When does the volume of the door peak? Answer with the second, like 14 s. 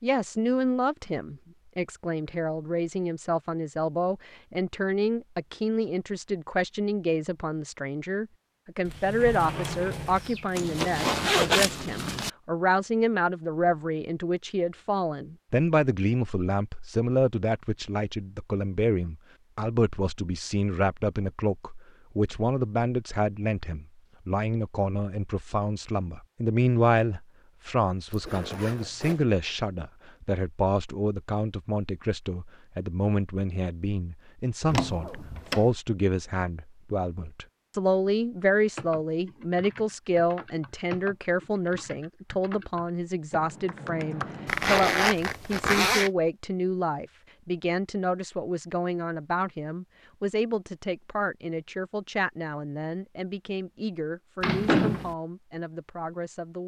55 s.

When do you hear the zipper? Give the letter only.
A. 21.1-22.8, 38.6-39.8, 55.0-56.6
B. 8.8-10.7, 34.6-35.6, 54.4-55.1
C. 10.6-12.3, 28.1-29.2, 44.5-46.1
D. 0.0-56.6
C.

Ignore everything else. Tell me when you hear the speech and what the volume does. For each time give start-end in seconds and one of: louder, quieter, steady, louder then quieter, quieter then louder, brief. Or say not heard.
0.0-56.6 steady.